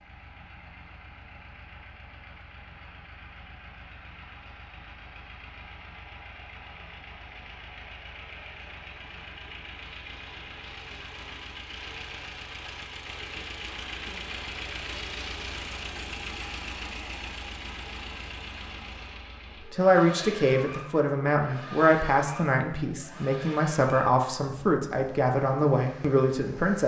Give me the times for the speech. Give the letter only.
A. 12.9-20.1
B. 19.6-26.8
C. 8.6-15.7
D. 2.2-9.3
B.